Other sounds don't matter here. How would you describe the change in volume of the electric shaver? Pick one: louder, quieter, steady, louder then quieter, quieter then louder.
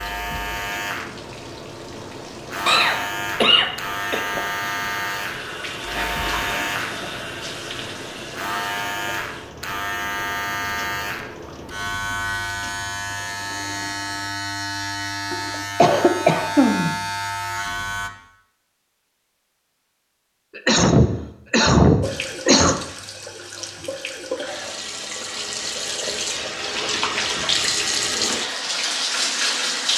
steady.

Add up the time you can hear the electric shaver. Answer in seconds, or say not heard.
18 s.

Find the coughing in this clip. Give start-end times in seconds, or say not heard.
2.6-4.2, 15.8-16.9, 20.6-22.8.